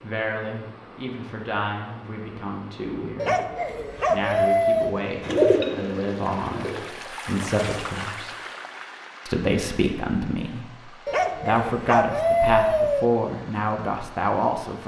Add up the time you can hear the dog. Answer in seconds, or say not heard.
4 s.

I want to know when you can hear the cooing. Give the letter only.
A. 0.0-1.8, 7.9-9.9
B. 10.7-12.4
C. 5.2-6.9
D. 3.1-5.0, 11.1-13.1
C.